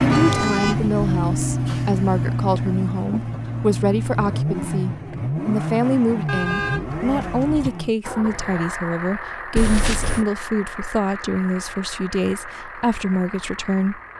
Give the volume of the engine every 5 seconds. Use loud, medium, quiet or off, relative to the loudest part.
loud, medium, quiet.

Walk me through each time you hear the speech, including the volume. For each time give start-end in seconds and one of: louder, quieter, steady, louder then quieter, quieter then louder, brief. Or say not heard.
0.0-14.0 steady.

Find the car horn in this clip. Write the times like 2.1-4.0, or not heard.
0.1-2.3, 6.2-7.7, 9.6-10.2.